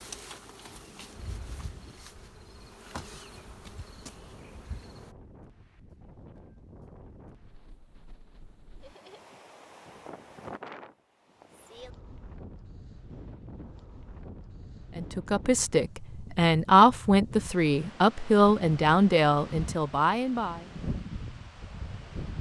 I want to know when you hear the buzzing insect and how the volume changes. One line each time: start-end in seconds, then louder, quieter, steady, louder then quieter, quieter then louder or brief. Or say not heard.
0.0-5.2 steady.